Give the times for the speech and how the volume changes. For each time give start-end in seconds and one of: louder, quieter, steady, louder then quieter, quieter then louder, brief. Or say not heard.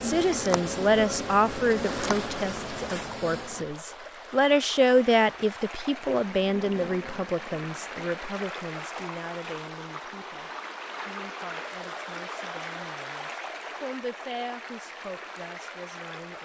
0.0-16.4 quieter then louder.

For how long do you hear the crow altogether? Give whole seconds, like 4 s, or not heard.
not heard.